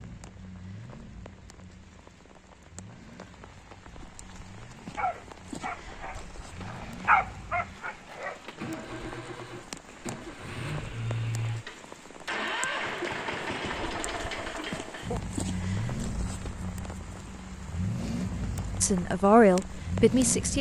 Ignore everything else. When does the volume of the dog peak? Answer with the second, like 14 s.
7 s.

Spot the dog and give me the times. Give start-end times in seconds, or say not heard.
5.0-8.4.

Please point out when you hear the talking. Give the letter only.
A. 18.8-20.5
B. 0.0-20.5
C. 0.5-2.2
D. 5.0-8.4
A.